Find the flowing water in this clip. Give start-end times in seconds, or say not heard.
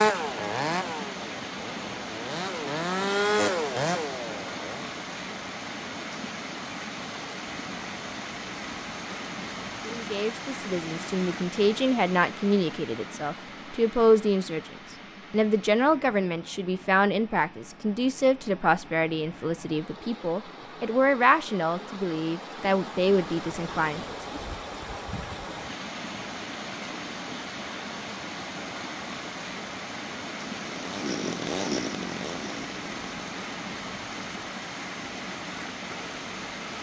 0.0-36.7.